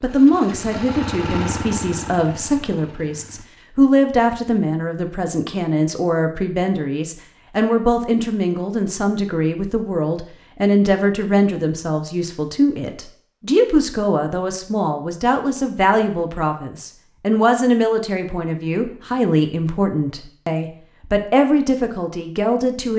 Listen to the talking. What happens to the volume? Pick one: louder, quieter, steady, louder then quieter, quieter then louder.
steady.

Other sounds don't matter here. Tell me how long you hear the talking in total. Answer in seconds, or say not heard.
23 s.